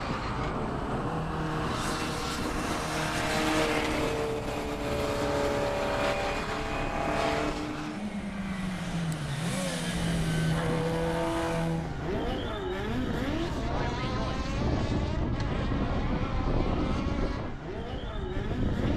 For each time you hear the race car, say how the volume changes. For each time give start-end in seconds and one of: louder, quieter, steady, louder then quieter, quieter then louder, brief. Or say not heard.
0.0-18.9 quieter.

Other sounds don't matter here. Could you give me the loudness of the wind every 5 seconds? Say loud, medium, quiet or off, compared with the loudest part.
medium, medium, loud, loud.